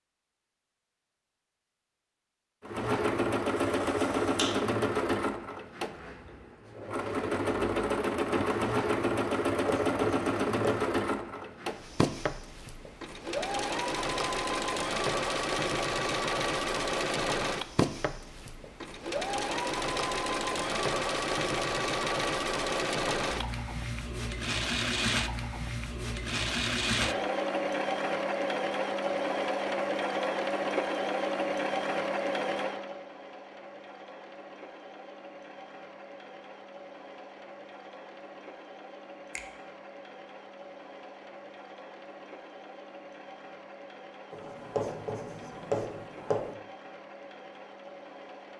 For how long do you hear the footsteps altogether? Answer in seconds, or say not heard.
not heard.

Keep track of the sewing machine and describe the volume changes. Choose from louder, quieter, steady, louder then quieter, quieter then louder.
quieter.